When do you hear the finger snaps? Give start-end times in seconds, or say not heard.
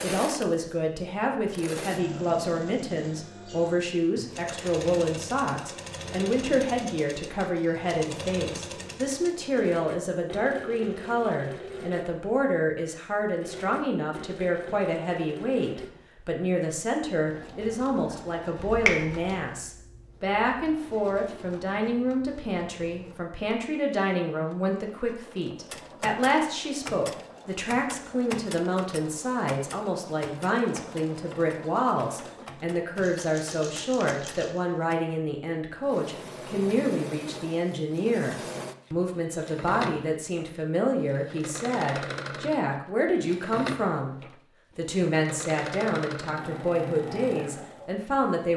18.6-19.4.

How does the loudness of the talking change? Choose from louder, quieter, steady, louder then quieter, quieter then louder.
steady.